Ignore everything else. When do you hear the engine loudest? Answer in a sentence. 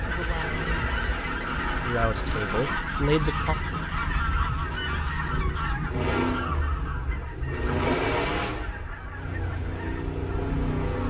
The volume of the engine peaks at 8 seconds.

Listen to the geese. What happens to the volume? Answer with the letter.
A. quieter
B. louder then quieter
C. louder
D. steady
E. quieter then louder
A.